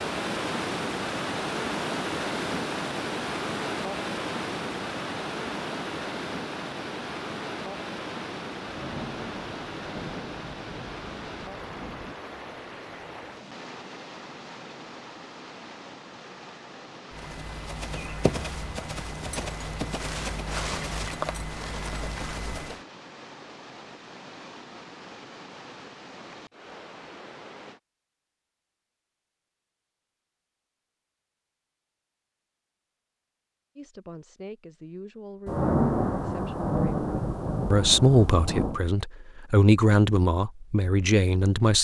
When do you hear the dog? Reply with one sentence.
You can't hear the dog here.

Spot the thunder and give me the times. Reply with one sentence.
The thunder can be heard from 8.7 to 12.2 s and from 35.5 to 38.8 s.